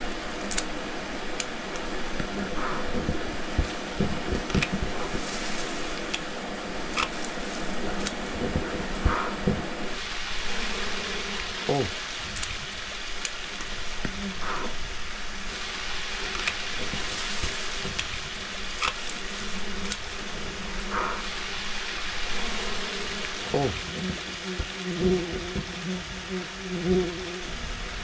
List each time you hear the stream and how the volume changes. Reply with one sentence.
The stream can be heard from 0.0 to 28.0 s, at a steady volume.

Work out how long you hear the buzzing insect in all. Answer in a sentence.
You can hear the buzzing insect for 28 seconds altogether.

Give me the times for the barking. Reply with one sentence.
The barking can be heard from 2.3 to 5.2 s, from 7.8 to 9.7 s, from 16.1 to 17.9 s and from 23.3 to 25.8 s.